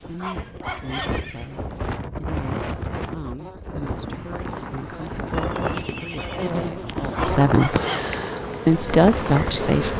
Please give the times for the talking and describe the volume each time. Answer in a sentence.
The talking can be heard from 0.1 to 7.8 s, getting louder; and briefly from 8.7 to 9.9 s.